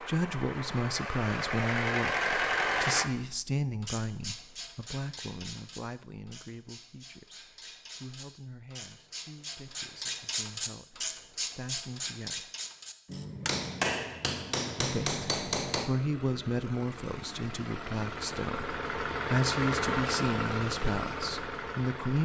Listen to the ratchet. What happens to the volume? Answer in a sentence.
The volume of the ratchet goes down, then up.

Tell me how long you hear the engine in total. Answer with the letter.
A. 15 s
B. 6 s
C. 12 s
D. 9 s
C.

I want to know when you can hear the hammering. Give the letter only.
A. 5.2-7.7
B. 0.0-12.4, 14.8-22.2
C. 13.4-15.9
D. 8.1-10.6
C.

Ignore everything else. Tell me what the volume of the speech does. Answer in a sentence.
The volume of the speech goes down, then up.